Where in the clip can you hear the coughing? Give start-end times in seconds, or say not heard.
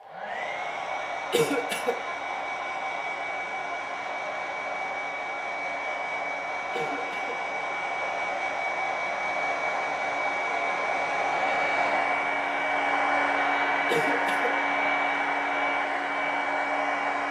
1.3-2.0, 6.7-7.4, 13.8-14.6.